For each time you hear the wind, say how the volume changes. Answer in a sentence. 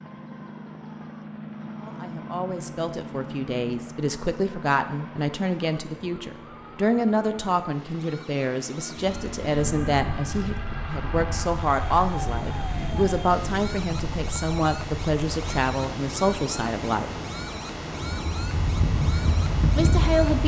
The wind can be heard from 8.9 to 20.4 s, getting louder.